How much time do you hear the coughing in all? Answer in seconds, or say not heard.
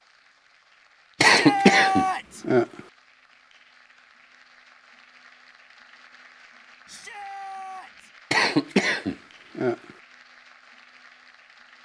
3 s.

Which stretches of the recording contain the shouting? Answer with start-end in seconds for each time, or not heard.
1.2-2.5, 6.8-8.1.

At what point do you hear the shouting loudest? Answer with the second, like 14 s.
2 s.